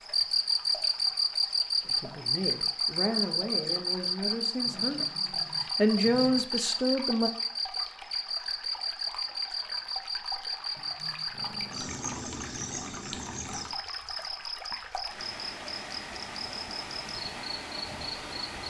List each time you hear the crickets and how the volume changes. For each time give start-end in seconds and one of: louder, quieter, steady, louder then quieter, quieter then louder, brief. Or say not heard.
0.0-18.6 quieter.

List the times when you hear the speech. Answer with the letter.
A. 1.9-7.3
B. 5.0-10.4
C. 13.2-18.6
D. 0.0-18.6
A.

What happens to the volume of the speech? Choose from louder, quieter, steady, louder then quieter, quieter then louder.
louder.